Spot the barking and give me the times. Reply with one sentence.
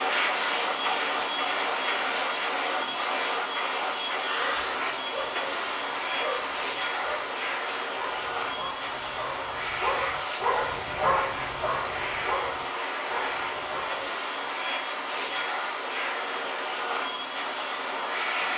You can hear the barking from 4.3 to 14.1 s.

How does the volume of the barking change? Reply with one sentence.
The volume of the barking goes up, then down.